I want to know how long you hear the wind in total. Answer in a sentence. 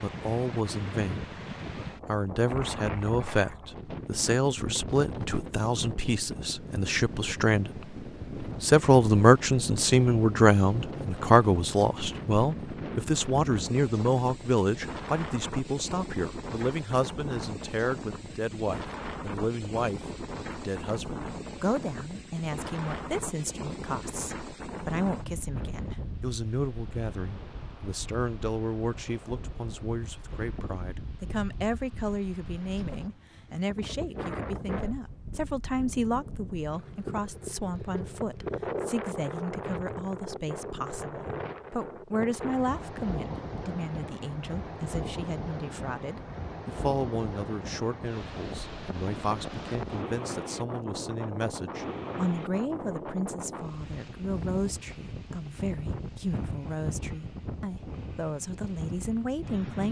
The wind can be heard for 60 seconds in total.